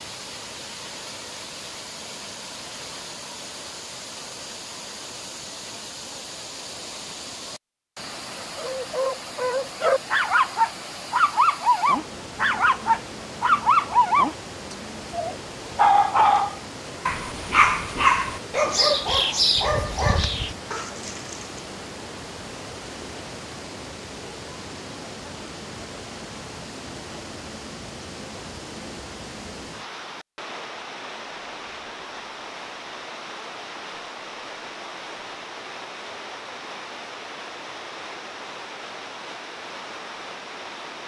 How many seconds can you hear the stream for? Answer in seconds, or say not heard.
41 s.